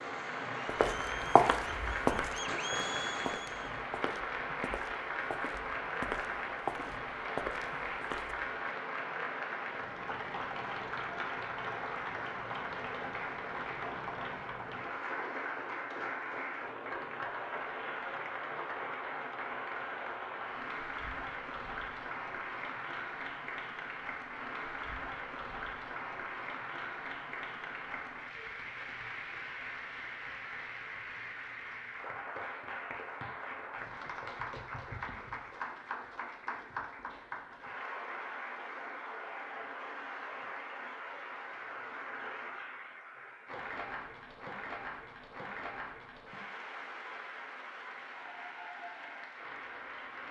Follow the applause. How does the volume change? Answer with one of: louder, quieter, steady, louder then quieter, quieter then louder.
quieter.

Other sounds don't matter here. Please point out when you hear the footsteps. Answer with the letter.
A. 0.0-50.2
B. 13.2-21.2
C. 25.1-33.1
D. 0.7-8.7
D.